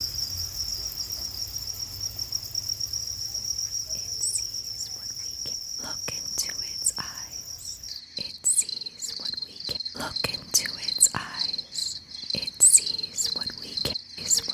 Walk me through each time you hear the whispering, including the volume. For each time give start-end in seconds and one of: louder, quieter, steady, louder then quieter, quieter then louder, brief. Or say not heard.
4.0-14.4 louder.